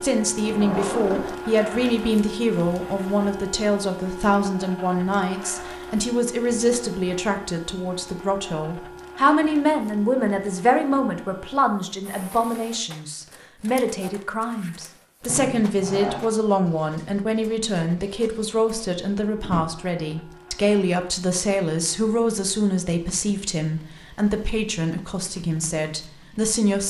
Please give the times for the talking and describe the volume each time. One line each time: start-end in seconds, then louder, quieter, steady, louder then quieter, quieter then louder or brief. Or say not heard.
0.0-26.8 steady.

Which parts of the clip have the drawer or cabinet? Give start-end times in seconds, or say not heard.
0.4-1.4, 15.2-16.3, 19.4-19.9.